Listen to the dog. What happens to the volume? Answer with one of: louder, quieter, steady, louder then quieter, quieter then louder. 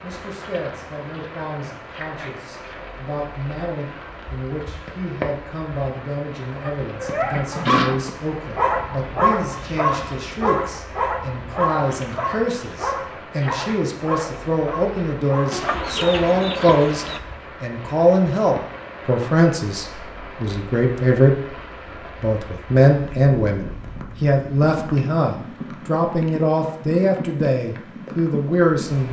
quieter.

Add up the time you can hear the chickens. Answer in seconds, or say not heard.
2 s.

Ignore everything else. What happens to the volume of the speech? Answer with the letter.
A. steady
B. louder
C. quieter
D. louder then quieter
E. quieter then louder
B.